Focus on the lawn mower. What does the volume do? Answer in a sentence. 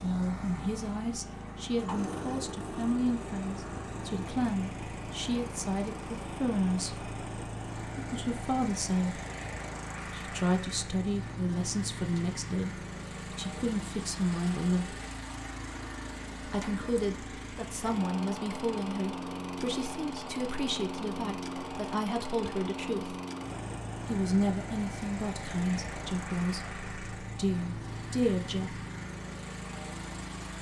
The volume of the lawn mower stays about the same.